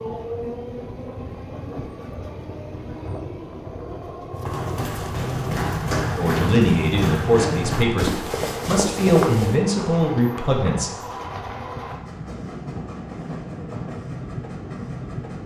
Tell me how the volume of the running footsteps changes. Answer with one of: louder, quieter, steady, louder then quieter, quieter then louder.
steady.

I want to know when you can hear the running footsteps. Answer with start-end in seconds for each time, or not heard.
4.4-9.6.